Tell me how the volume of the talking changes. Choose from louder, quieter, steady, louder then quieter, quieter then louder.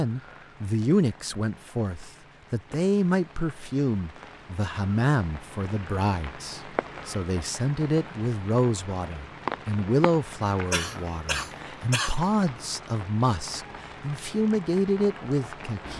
steady.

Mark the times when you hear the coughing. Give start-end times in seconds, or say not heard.
10.7-12.2.